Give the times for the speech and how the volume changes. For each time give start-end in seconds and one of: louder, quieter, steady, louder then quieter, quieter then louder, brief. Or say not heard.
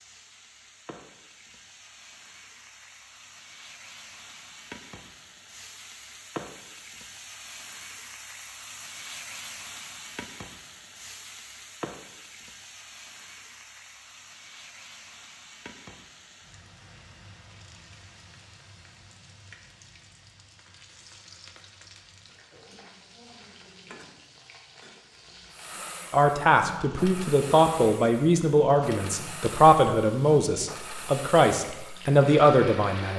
26.1-33.1 steady.